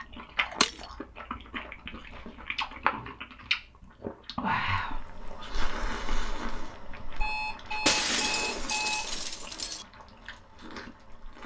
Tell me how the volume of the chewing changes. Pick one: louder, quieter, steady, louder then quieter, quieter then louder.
louder then quieter.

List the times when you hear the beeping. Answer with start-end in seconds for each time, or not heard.
7.2-9.1.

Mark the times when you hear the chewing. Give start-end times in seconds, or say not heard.
0.0-11.4.